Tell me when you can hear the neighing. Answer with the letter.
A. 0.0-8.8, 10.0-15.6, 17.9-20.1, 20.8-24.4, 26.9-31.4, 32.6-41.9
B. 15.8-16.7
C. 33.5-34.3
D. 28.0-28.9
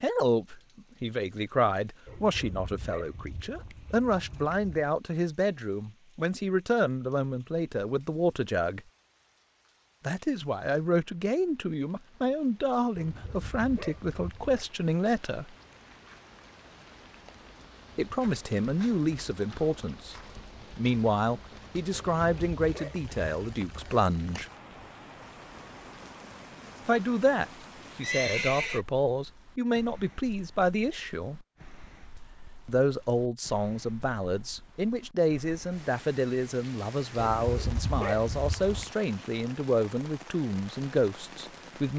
D.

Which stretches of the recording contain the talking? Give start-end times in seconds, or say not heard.
0.0-8.8, 10.0-15.6, 17.9-20.1, 20.8-24.4, 26.9-31.4, 32.6-41.9.